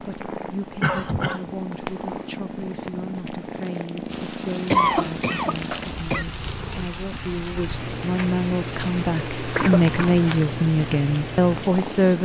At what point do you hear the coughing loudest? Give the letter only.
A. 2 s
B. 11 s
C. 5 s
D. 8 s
C.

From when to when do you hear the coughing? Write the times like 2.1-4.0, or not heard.
0.8-1.5, 4.7-6.2, 9.5-10.4.